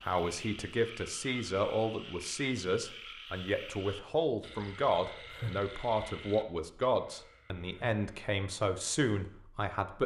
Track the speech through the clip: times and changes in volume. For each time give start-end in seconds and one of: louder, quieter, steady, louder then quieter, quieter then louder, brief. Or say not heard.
0.0-10.0 steady.